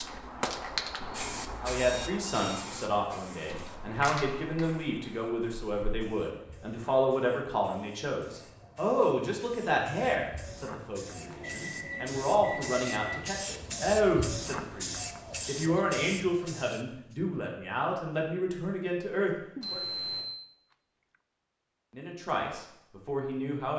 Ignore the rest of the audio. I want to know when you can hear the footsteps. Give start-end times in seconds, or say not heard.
not heard.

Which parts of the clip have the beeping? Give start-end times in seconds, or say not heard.
1.8-2.6, 11.2-13.2, 19.6-20.2.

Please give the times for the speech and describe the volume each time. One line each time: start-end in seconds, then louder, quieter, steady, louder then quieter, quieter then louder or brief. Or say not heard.
1.6-19.9 steady
21.9-23.7 brief.